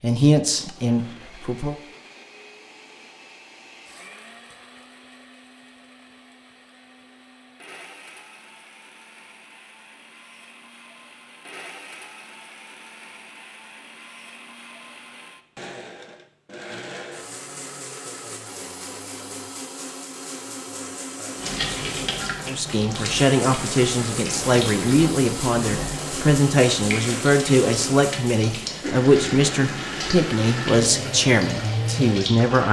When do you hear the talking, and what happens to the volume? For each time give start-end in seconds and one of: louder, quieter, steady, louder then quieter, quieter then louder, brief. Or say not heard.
0.0-1.8 brief
22.4-32.6 steady.